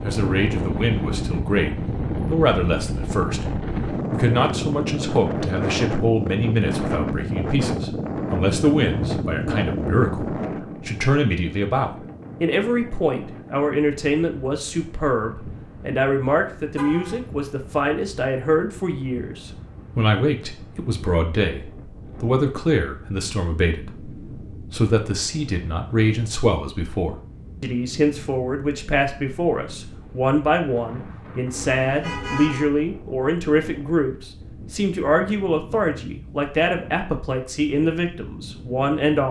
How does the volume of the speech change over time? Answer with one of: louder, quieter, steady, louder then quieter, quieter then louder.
steady.